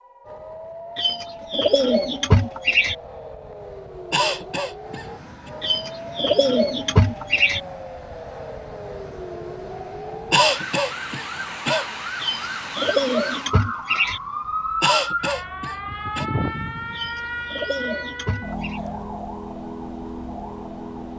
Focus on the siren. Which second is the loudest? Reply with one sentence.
The volume of the siren peaks at 15 seconds.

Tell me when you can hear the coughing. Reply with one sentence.
The coughing can be heard from 4.1 to 5.5 s, from 10.3 to 11.9 s and from 14.8 to 16.2 s.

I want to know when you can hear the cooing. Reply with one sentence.
You can hear the cooing from 0.9 to 3.0 s, from 5.6 to 7.6 s, from 12.2 to 14.2 s and from 16.9 to 18.8 s.